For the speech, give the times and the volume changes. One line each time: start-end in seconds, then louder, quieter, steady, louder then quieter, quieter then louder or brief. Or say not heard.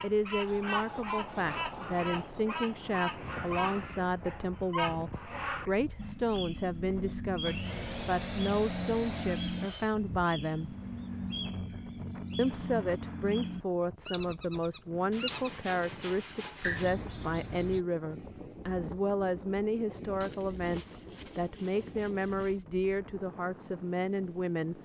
0.0-10.8 steady
12.3-24.8 steady.